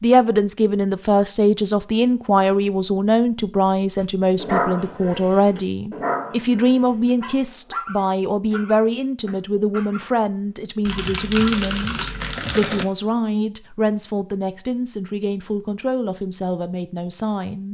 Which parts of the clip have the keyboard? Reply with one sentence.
You can hear the keyboard from 10.8 to 12.8 s.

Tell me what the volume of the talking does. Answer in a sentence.
The volume of the talking goes down.